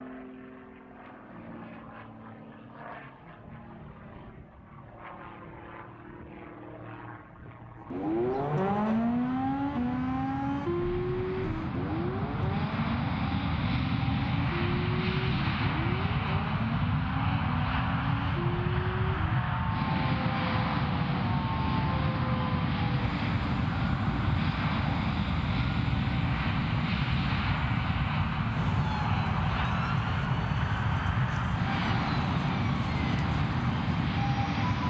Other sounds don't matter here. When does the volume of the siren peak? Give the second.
9 s.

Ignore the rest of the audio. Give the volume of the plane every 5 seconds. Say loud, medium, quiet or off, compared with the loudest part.
quiet, quiet, loud, loud, loud, loud, loud.